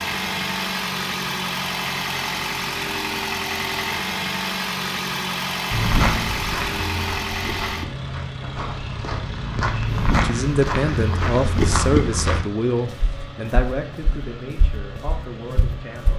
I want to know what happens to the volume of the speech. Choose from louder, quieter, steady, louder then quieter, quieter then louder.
quieter.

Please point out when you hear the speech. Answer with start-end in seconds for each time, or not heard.
10.1-16.1.